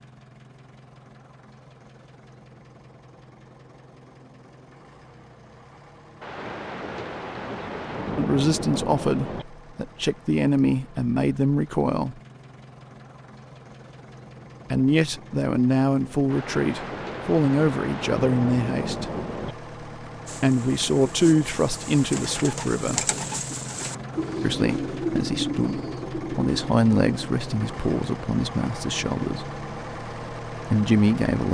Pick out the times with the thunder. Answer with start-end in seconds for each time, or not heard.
6.2-9.4, 16.3-19.6.